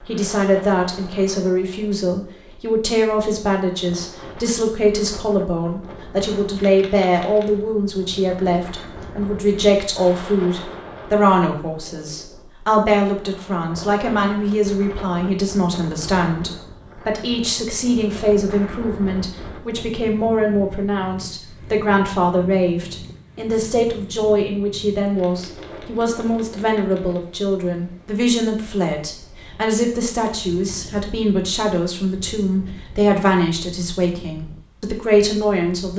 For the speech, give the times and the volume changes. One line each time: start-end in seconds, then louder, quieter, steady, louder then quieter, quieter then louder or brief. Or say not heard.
0.0-35.9 steady.